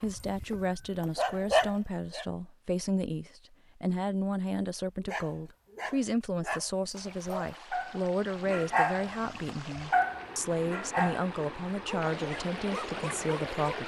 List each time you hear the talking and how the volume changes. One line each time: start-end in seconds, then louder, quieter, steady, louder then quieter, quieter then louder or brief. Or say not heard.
0.0-13.8 steady.